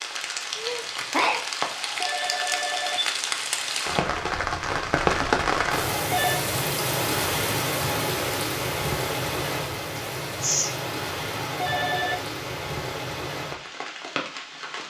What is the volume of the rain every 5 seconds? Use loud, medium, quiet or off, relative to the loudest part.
loud, loud, medium.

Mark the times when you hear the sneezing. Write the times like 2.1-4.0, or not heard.
0.6-1.4, 9.9-10.8.